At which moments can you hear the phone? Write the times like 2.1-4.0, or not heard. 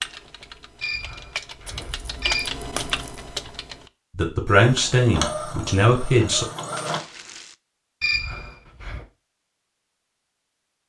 0.8-2.5, 8.0-9.1.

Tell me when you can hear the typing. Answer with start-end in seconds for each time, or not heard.
0.0-3.9.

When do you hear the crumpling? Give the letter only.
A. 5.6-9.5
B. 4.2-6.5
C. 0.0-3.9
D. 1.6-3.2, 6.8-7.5
D.